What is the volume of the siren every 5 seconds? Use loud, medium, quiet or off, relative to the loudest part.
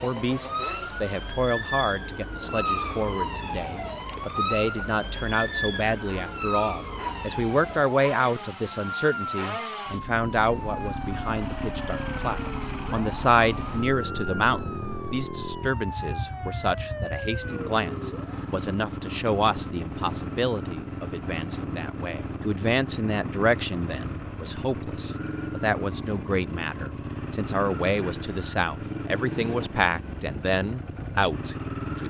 loud, loud, medium, medium, off, off, off.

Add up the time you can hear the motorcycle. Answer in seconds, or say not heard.
32 s.